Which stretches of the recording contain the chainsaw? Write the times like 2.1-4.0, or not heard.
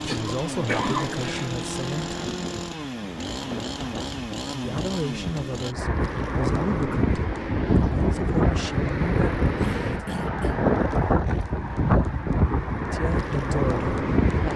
0.0-5.8.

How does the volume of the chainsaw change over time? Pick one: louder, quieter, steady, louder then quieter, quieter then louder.
steady.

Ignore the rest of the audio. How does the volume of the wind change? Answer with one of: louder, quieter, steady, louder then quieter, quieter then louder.
louder.